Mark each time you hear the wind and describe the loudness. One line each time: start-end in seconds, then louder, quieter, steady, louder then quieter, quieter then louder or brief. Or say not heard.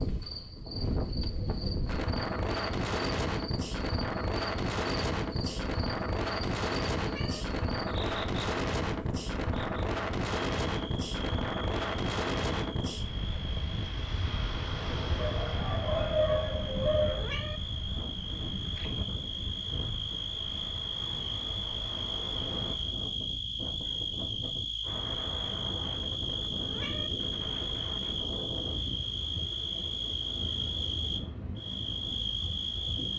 0.0-33.1 quieter.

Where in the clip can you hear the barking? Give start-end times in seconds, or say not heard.
15.2-17.3.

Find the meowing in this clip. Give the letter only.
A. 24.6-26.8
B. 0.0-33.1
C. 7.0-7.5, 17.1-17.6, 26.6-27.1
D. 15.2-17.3
C.